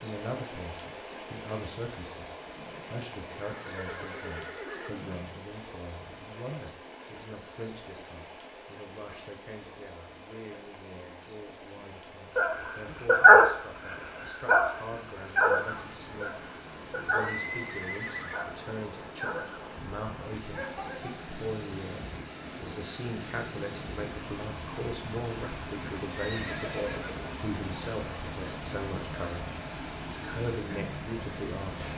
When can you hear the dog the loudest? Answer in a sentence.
The loudest moment of the dog is at 13 seconds.